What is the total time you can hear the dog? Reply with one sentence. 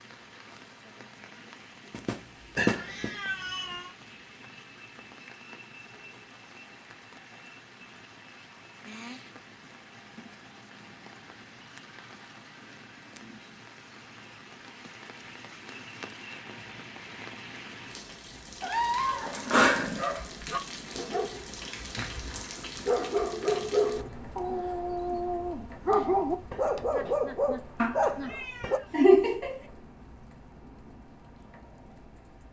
You can hear the dog for 9 seconds altogether.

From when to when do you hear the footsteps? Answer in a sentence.
The footsteps can't be heard in this clip.